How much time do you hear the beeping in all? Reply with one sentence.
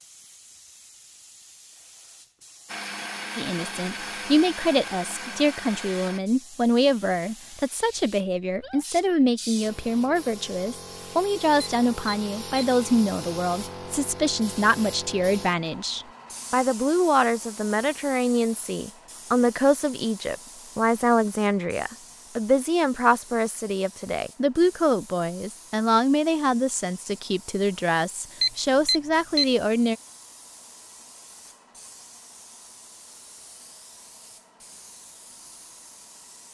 The beeping can be heard for 2 seconds in total.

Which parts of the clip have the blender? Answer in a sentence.
You can hear the blender from 2.6 to 6.2 s.